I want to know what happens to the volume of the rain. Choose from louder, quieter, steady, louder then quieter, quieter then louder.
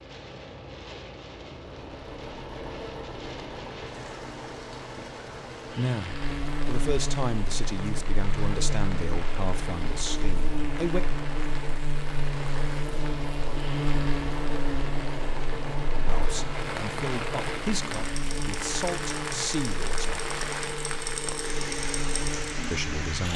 louder.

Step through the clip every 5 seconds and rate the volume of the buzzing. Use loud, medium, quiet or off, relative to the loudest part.
off, loud, loud, medium, medium.